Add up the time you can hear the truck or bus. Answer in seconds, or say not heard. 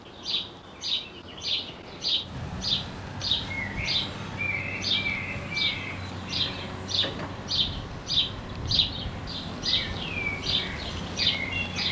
12 s.